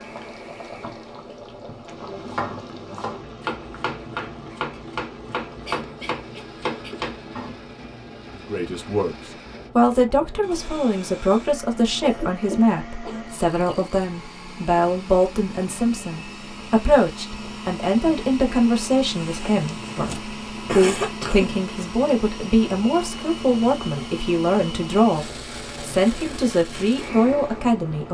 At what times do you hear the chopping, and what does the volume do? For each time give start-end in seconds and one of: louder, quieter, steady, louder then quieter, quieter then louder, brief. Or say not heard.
1.9-7.6 steady.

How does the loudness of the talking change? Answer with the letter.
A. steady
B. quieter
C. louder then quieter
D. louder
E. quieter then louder
A.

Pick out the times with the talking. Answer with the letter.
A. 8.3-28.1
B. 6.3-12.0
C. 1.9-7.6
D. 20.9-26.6
A.